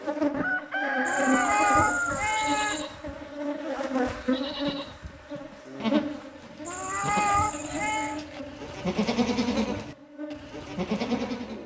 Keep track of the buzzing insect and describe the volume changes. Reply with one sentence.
The loudness of the buzzing insect goes down.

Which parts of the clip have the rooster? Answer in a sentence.
You can hear the rooster from 0.4 to 2.4 s.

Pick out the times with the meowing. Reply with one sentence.
You can hear the meowing from 1.1 to 2.9 s and from 6.7 to 8.2 s.